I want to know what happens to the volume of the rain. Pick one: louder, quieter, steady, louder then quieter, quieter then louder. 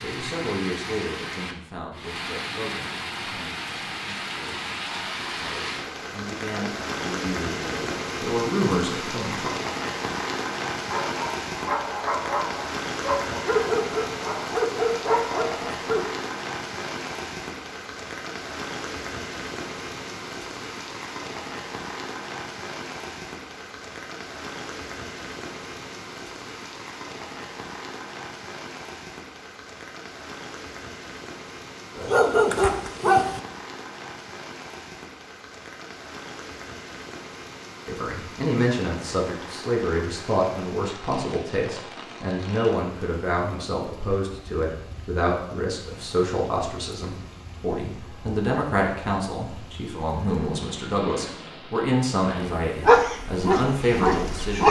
quieter.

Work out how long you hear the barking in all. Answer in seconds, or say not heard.
9 s.